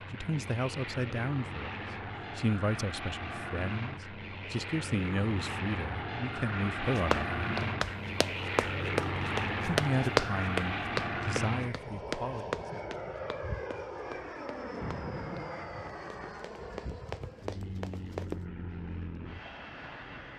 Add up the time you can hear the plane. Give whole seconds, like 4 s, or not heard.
20 s.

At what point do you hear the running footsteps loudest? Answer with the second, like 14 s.
10 s.